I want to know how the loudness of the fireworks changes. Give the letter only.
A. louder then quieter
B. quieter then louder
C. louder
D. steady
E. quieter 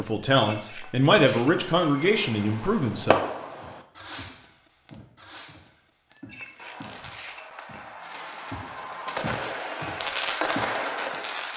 B.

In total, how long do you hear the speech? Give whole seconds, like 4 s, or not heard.
3 s.